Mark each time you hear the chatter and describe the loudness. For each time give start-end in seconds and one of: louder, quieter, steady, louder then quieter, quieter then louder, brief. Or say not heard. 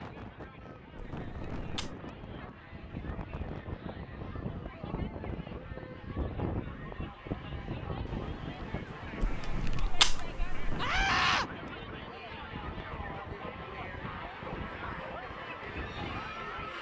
0.0-16.7 louder.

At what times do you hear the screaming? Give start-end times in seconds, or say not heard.
10.8-11.5.